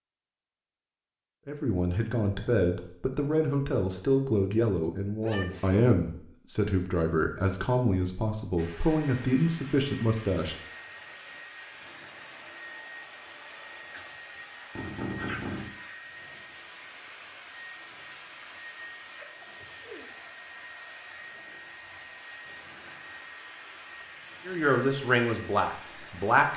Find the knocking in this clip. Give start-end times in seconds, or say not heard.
14.8-15.8.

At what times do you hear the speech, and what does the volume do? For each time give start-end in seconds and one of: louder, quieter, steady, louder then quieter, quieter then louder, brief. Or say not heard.
1.4-10.6 steady
24.4-26.5 brief.